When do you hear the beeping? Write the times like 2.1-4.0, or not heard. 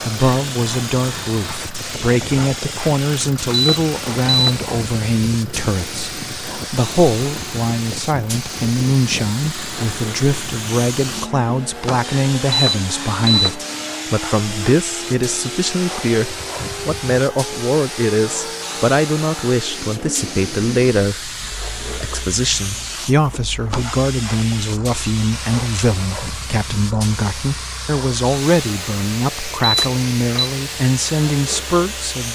3.5-4.6, 12.4-13.6, 29.6-30.5.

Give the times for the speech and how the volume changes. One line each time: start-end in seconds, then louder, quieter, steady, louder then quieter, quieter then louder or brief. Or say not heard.
0.0-32.2 steady.